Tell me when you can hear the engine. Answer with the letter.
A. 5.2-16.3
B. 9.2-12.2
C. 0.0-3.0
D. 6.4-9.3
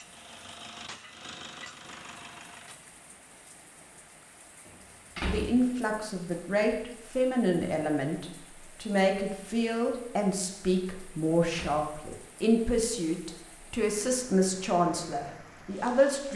C.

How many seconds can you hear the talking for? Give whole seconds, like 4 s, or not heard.
11 s.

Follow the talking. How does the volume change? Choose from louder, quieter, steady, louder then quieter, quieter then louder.
steady.